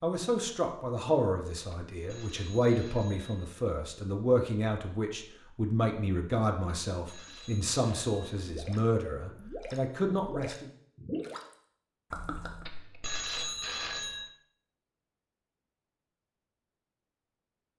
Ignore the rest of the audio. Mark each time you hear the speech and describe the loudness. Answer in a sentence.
You can hear the speech from 0.0 to 10.7 s, at a steady volume.